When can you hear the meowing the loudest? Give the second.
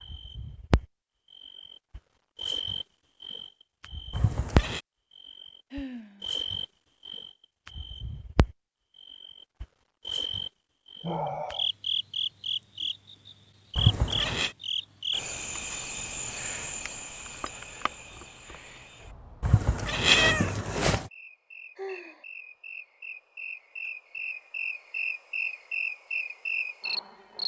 20 s.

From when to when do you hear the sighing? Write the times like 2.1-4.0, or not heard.
5.7-6.2, 11.0-11.7, 21.8-22.2.